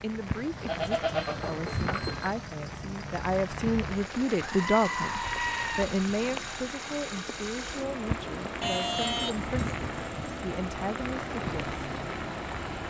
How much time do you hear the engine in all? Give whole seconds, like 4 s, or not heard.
13 s.